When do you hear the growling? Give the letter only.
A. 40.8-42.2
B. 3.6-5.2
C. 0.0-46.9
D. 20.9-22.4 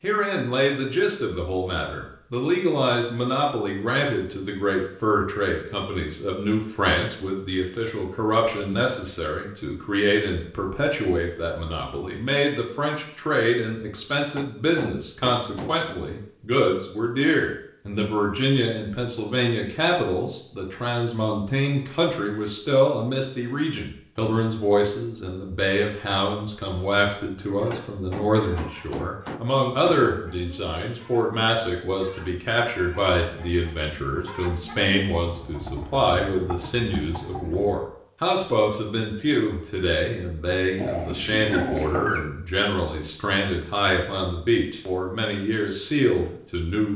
A.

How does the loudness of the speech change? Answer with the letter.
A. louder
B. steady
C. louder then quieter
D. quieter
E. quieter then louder
B.